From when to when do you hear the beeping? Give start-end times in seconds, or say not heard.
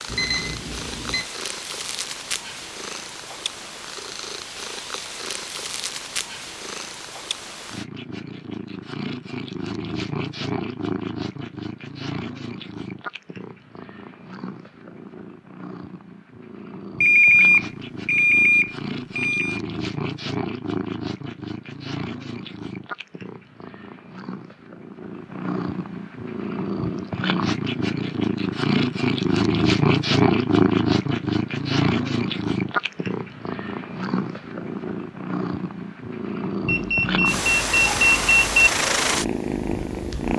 0.1-1.2, 17.0-19.6, 36.6-38.6.